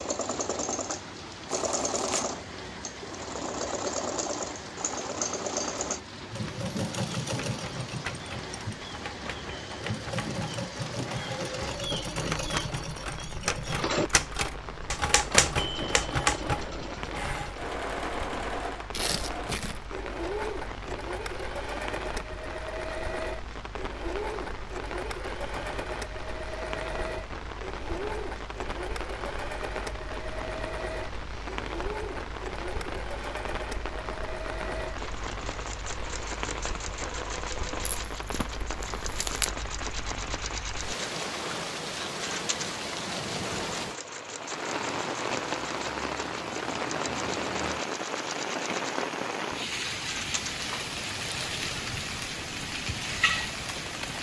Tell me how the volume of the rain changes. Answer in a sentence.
The loudness of the rain goes up.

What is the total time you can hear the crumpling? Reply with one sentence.
You can hear the crumpling for 3 seconds altogether.